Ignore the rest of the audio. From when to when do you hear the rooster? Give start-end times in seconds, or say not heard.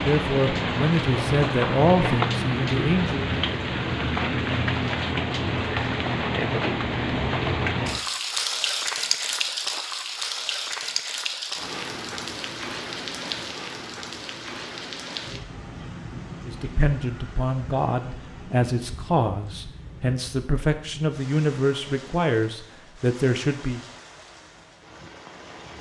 not heard.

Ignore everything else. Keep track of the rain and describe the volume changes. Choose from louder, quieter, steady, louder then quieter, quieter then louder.
quieter.